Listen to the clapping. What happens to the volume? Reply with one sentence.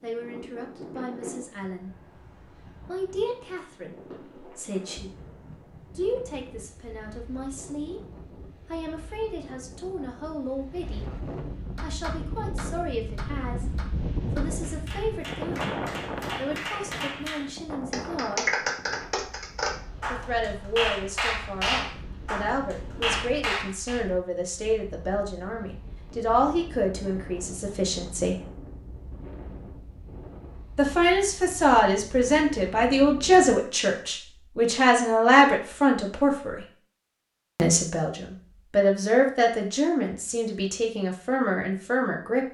The volume of the clapping goes up.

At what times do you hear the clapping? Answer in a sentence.
The clapping can be heard from 11.8 to 24.0 s.